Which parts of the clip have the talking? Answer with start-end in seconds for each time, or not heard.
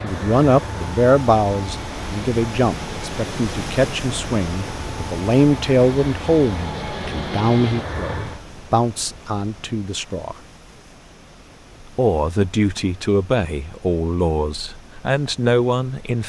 0.0-10.3, 11.9-16.2.